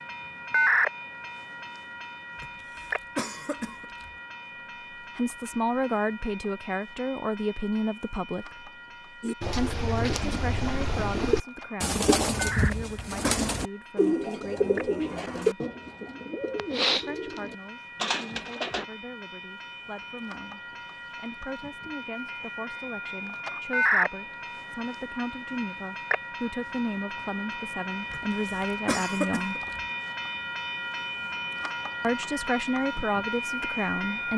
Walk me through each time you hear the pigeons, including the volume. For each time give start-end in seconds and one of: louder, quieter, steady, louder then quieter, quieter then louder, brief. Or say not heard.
9.2-18.9 steady.